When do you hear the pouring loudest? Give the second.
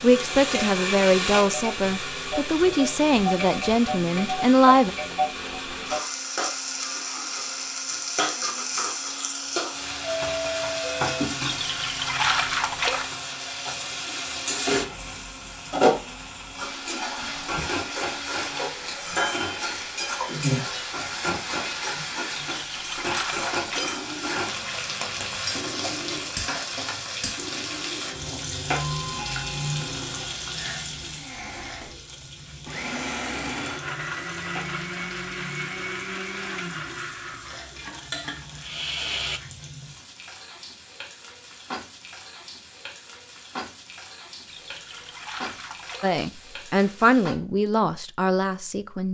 12 s.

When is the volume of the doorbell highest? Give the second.
10 s.